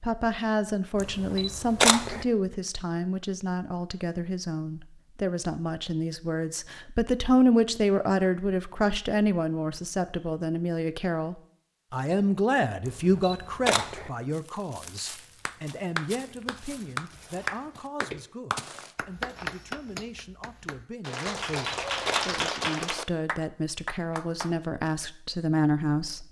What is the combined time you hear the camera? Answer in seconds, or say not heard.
4 s.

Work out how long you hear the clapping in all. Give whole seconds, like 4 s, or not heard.
9 s.